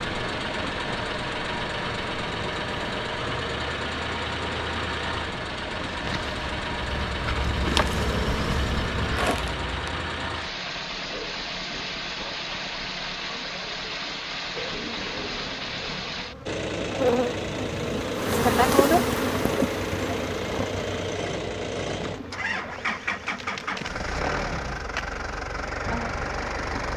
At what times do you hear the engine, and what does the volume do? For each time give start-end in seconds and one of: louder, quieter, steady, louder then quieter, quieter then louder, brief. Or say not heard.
0.0-26.9 steady.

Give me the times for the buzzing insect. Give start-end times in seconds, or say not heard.
0.2-10.2, 14.6-26.9.